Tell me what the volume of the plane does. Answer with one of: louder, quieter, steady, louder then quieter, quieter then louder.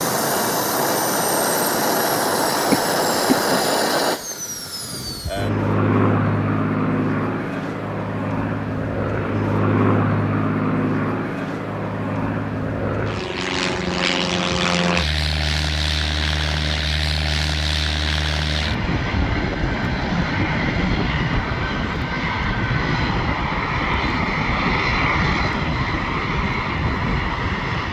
steady.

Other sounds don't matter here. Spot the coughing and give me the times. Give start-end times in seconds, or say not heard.
2.7-3.6.